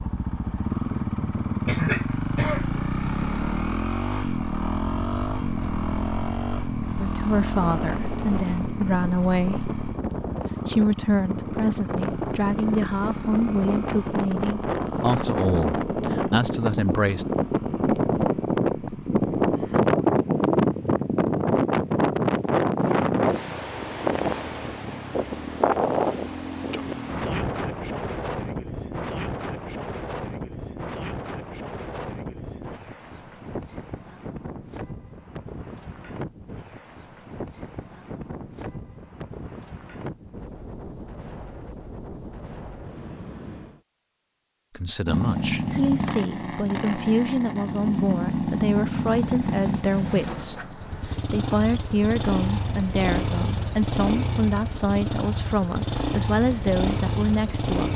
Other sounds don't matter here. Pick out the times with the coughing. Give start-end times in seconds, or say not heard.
1.6-2.7.